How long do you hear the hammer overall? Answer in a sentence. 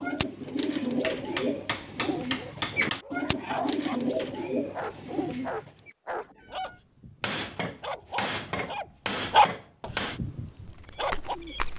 The hammer can be heard for 5 seconds in total.